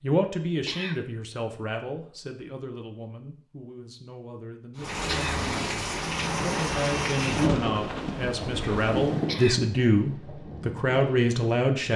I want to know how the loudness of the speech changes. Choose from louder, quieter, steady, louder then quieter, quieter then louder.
quieter then louder.